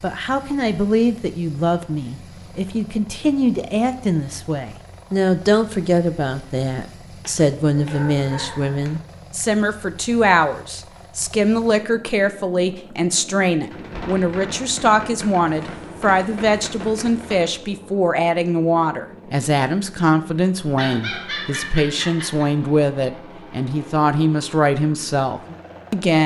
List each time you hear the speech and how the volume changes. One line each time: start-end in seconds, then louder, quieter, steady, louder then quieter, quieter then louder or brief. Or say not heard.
0.0-26.2 steady.